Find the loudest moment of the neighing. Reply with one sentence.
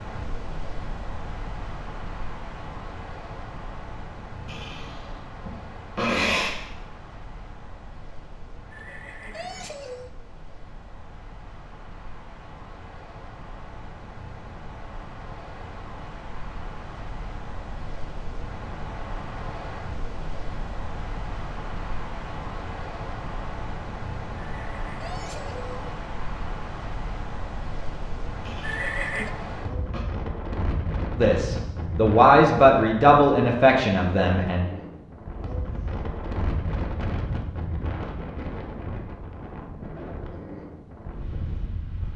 The volume of the neighing peaks at 29 seconds.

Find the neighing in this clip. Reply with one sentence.
The neighing can be heard from 8.7 to 10.1 s, from 24.4 to 25.9 s and from 28.6 to 29.3 s.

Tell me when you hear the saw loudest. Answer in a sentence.
The loudest moment of the saw is at 6 seconds.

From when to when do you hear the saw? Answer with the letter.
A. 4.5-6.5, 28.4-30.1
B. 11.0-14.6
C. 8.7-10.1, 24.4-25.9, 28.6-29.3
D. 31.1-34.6
A.